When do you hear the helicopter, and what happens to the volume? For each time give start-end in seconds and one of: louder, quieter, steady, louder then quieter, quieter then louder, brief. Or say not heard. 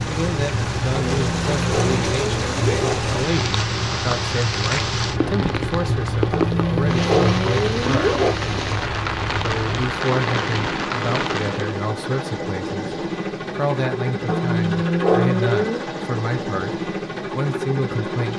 0.0-18.3 steady.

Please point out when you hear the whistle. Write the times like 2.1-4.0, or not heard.
not heard.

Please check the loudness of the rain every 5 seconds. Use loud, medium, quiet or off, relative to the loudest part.
loud, loud, loud, off.